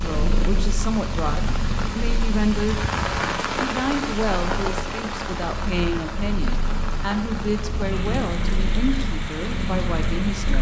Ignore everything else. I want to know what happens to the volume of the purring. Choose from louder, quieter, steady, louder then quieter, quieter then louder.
quieter then louder.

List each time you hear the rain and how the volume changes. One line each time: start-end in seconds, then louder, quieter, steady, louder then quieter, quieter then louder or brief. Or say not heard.
0.0-10.5 louder then quieter.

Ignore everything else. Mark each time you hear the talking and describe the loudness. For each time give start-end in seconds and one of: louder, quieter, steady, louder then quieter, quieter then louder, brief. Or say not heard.
0.0-2.9 brief
3.5-10.5 steady.